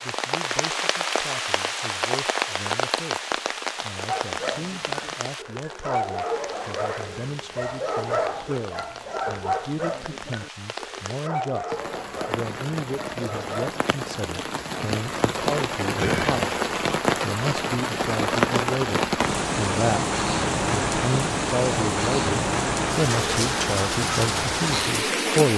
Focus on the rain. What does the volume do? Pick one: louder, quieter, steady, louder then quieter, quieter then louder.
quieter then louder.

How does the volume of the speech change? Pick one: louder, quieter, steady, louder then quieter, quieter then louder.
louder.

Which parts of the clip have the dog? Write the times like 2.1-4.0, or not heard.
4.0-13.8.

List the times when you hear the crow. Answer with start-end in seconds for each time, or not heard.
not heard.